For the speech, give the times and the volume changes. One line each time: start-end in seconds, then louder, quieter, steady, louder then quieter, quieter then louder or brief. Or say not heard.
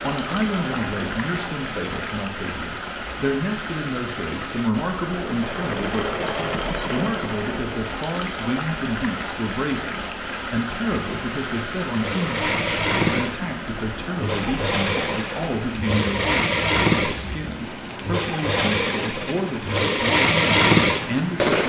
0.0-21.6 steady.